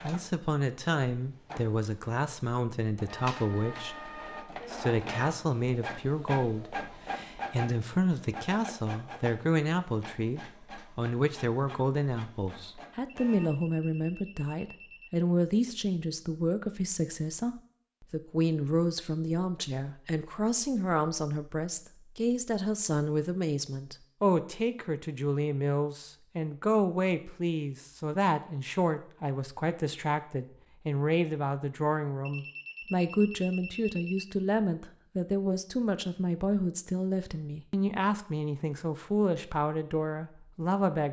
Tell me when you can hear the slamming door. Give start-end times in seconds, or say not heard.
not heard.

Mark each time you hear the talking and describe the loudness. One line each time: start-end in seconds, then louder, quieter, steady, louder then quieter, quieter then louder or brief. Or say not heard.
0.0-41.0 steady.